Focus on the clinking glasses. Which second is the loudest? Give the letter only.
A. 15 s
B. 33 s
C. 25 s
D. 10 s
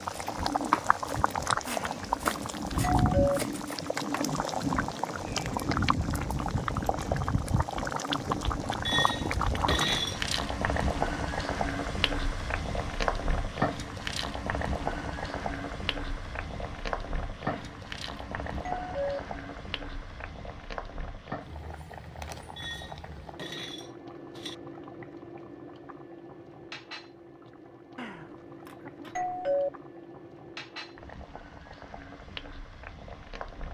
D.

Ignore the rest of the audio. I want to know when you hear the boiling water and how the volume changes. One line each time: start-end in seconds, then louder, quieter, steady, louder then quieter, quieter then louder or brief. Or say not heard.
0.0-33.6 quieter.